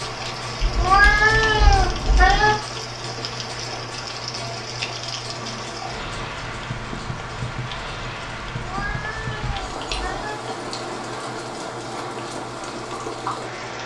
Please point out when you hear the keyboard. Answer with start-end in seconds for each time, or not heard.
not heard.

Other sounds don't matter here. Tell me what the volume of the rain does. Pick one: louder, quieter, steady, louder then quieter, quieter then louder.
steady.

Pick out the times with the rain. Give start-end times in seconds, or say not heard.
0.0-13.8.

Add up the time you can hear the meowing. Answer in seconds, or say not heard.
4 s.